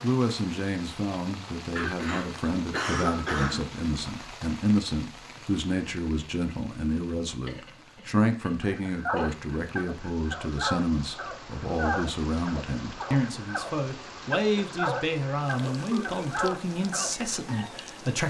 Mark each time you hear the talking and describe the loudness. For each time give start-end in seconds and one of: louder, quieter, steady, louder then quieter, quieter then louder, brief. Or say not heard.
0.0-18.2 steady.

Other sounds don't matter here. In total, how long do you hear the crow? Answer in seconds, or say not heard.
not heard.